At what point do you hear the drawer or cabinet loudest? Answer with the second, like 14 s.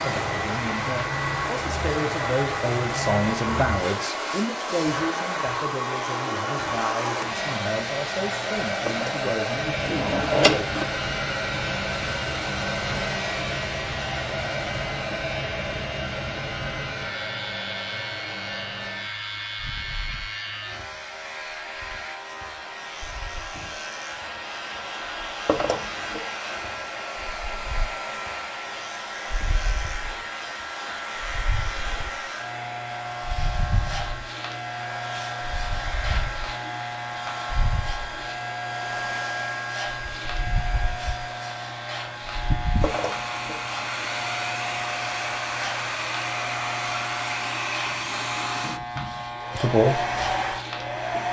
10 s.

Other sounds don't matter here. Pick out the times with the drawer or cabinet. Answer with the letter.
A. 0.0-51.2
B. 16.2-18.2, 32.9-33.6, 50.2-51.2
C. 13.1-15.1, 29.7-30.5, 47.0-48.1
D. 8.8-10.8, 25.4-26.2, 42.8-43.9
D.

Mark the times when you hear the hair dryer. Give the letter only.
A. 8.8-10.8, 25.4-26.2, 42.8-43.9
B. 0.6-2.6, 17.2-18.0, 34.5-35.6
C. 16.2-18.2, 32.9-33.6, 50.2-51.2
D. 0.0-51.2
D.